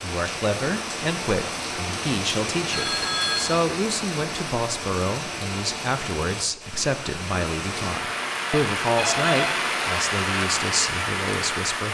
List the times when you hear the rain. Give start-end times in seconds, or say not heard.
0.0-11.8.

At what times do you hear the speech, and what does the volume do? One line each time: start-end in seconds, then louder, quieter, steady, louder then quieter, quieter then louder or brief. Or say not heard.
0.0-11.8 steady.